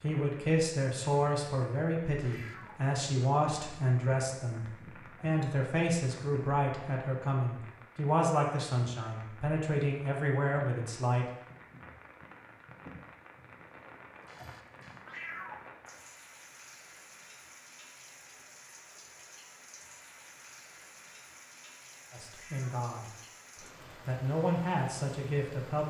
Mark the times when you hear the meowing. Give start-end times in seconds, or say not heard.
2.2-2.9, 15.1-15.7, 22.3-22.8.